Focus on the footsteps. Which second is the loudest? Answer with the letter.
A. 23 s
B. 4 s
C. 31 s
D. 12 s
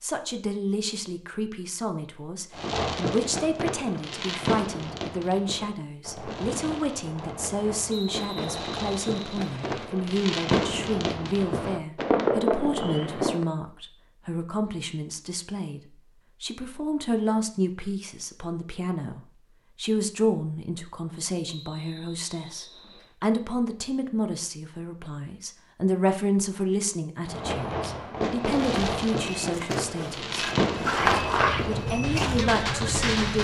C.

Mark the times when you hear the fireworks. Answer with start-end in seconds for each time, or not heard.
2.5-13.4, 27.2-33.3.